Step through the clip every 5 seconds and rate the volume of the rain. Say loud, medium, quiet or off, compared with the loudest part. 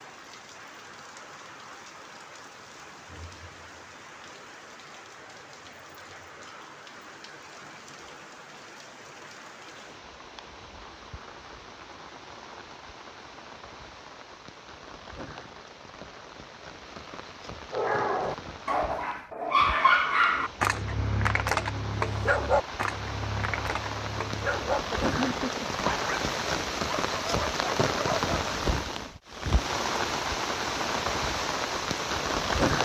quiet, quiet, quiet, quiet, medium, loud, loud.